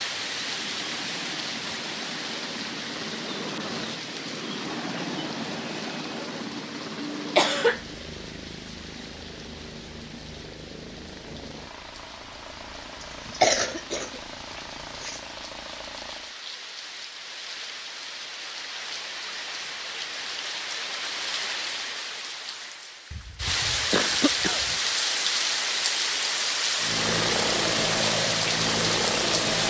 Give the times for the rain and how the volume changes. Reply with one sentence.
The rain can be heard from 0.0 to 29.6 s, getting quieter then louder.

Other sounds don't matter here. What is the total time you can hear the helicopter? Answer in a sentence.
The helicopter can be heard for 19 seconds in total.